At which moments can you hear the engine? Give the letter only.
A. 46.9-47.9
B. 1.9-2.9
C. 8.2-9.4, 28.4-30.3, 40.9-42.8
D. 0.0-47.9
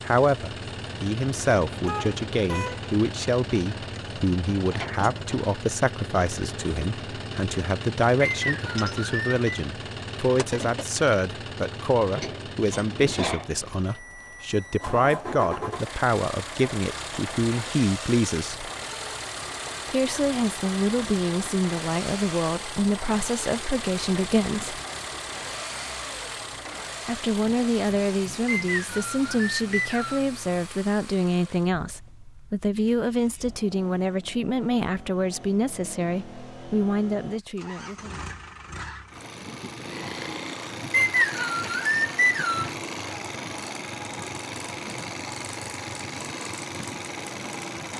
D.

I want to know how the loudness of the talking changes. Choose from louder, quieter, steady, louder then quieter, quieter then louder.
steady.